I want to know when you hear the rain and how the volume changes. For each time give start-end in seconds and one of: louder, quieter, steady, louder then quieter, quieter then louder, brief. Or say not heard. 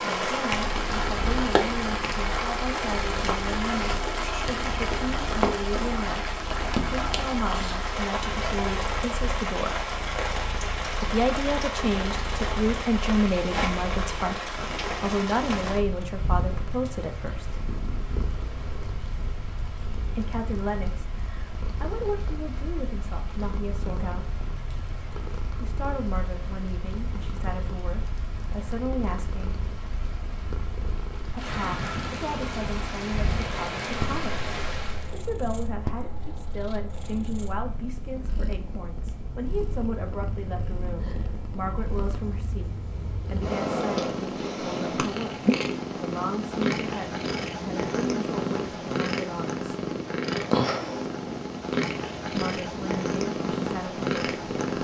0.0-35.1 quieter then louder.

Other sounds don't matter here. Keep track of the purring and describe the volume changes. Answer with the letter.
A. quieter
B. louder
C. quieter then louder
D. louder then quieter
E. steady
B.